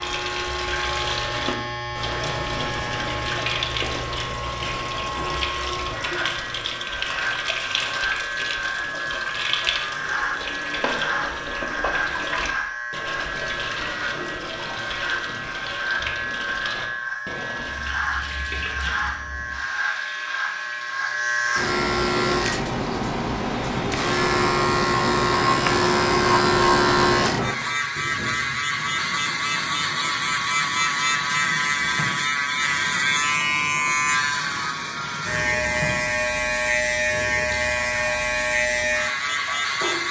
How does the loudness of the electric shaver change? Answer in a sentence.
The volume of the electric shaver goes up.